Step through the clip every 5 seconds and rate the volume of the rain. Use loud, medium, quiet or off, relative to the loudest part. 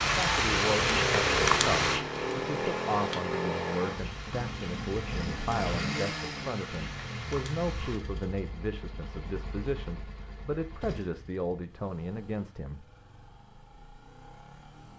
loud, quiet, off.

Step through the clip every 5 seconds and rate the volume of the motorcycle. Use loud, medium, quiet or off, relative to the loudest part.
loud, medium, quiet.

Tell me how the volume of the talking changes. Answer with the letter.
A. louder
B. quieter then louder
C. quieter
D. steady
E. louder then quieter
D.